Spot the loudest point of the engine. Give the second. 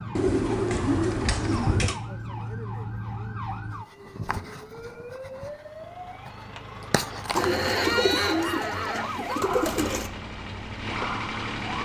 11 s.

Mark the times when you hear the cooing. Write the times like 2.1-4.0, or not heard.
0.1-2.0, 7.3-10.1.